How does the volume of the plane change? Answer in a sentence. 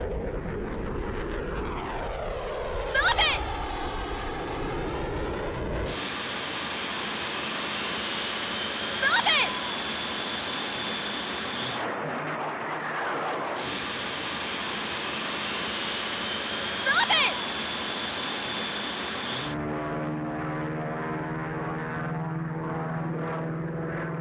The loudness of the plane stays about the same.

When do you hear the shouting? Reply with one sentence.
The shouting can be heard from 2.9 to 3.4 s, from 8.9 to 9.5 s and from 16.8 to 17.4 s.